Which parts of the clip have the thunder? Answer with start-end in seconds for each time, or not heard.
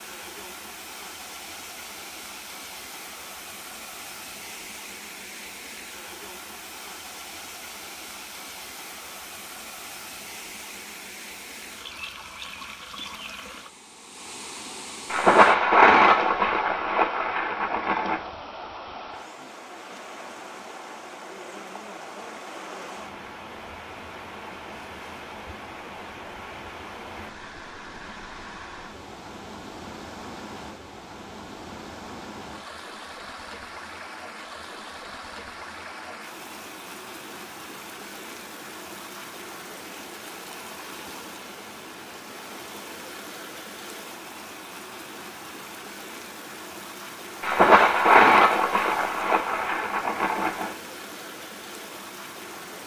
15.1-18.2, 47.4-50.8.